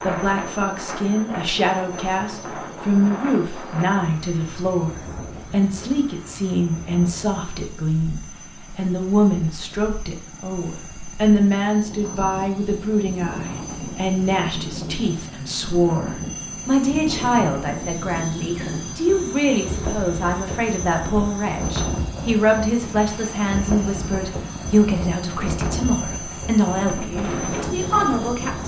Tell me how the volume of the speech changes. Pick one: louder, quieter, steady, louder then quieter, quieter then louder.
steady.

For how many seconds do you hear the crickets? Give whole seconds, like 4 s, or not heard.
not heard.